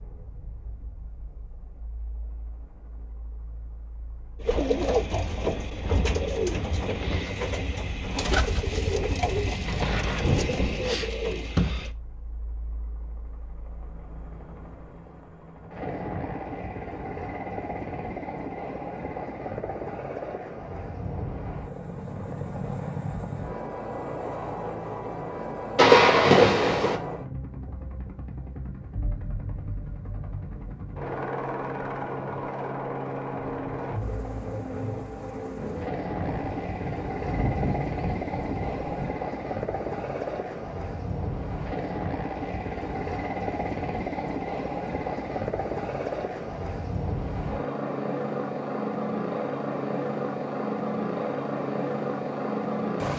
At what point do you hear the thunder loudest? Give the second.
26 s.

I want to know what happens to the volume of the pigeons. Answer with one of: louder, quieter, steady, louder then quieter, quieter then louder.
steady.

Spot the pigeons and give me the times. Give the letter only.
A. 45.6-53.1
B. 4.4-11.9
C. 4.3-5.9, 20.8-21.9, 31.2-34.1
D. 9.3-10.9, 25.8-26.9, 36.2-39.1
B.